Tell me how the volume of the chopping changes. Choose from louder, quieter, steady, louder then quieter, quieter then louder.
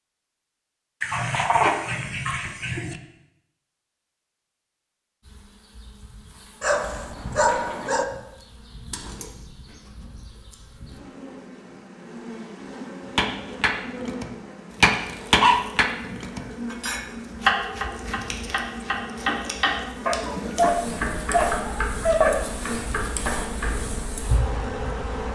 quieter.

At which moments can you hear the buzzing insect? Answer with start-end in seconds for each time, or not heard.
5.2-25.2.